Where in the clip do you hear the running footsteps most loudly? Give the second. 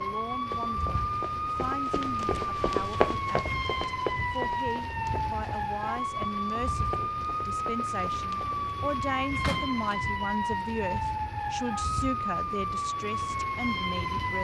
3 s.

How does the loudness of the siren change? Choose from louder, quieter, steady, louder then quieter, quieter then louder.
steady.